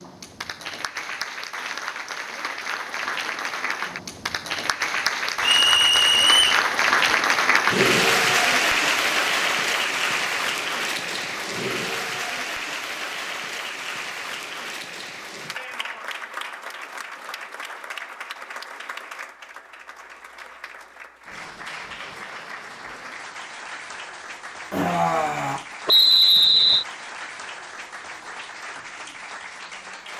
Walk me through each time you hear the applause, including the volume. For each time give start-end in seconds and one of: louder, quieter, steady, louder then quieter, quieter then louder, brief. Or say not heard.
0.0-30.1 louder then quieter.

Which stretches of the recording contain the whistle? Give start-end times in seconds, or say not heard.
5.4-6.7, 25.9-26.9.